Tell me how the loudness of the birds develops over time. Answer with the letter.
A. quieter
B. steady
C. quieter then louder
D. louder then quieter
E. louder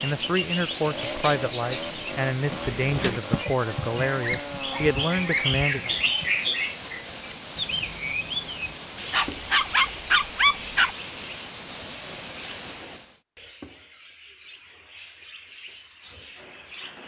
A.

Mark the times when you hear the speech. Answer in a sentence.
The speech can be heard from 0.0 to 6.0 s.